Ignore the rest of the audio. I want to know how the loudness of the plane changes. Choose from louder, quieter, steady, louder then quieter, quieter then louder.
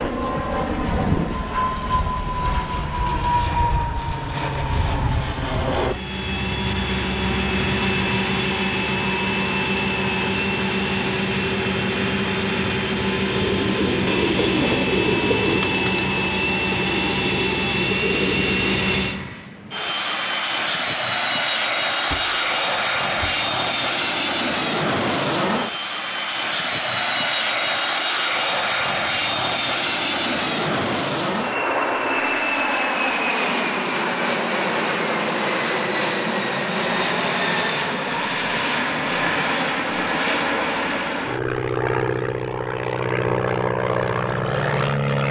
steady.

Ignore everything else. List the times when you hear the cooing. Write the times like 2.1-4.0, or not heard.
13.2-18.8.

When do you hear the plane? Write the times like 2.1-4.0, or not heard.
0.0-45.2.